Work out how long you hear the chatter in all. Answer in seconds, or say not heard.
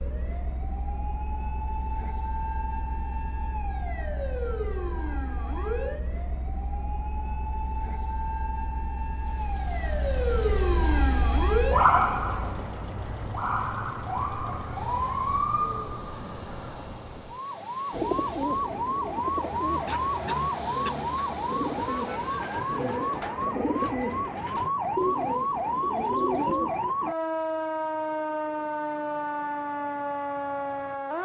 not heard.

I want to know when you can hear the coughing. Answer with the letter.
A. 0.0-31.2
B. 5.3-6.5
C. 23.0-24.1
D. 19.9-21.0
D.